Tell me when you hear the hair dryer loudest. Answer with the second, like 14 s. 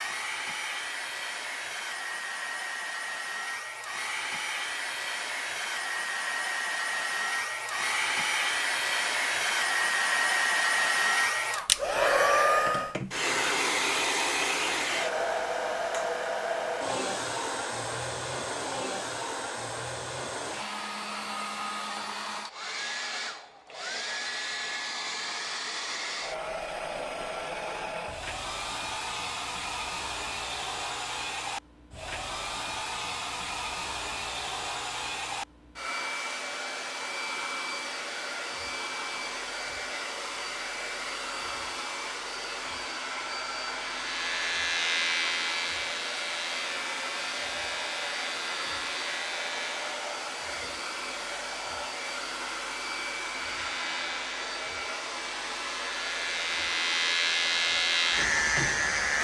12 s.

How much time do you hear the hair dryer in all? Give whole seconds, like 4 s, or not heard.
59 s.